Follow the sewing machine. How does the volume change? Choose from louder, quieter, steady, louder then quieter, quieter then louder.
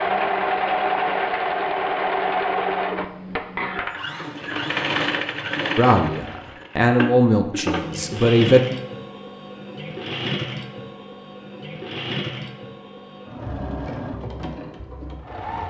quieter.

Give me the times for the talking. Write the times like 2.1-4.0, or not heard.
5.8-8.6.